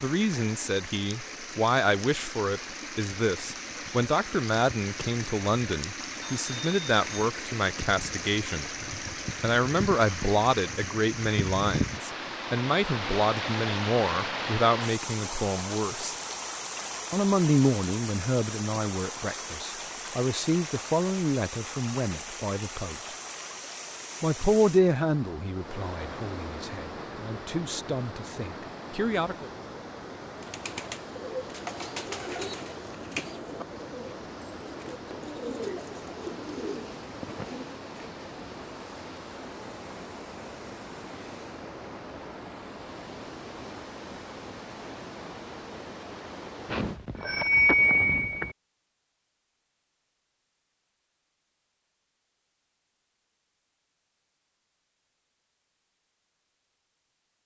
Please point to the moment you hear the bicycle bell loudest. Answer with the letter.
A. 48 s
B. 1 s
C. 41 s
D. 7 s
A.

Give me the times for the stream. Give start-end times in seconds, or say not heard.
0.0-47.0.